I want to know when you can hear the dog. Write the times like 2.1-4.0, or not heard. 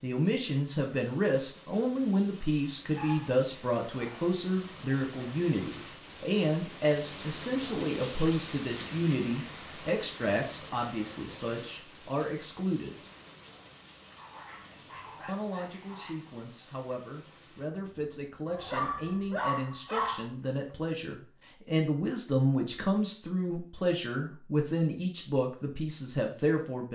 2.9-4.3, 14.2-16.2, 18.4-20.2.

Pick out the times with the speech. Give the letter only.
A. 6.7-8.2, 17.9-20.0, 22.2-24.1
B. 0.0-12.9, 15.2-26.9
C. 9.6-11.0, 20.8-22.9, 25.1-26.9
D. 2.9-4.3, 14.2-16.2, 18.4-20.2
B.